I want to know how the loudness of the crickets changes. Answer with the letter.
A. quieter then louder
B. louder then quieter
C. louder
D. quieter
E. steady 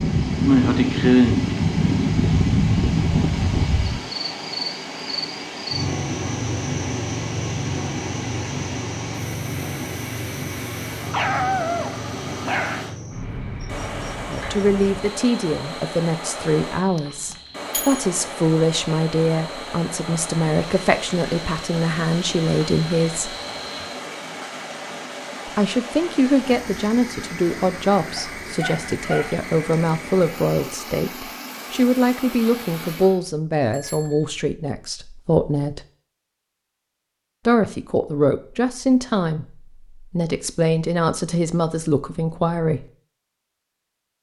D.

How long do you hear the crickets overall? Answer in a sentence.
The crickets can be heard for 24 seconds in total.